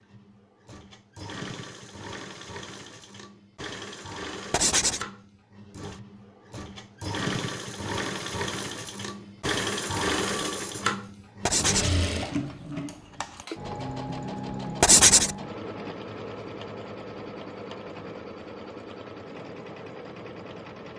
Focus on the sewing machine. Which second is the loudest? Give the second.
10 s.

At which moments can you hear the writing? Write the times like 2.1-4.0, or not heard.
4.5-5.0, 11.4-11.9, 14.8-15.3.